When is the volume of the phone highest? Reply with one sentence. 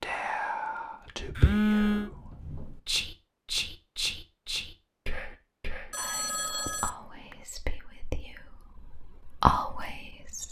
The volume of the phone peaks at 2 seconds.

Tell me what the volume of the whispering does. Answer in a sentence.
The loudness of the whispering goes down, then up.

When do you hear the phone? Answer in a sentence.
The phone can be heard from 1.4 to 2.1 s and from 5.9 to 7.3 s.